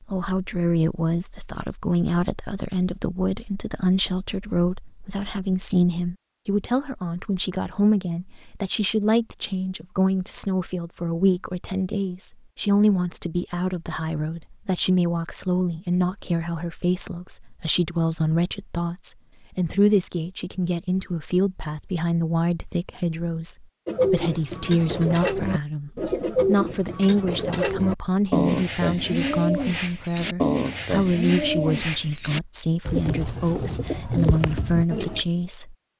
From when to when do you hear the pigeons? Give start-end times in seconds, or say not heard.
23.9-35.2.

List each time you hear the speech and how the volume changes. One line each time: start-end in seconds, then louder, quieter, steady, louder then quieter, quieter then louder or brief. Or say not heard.
0.0-35.8 steady.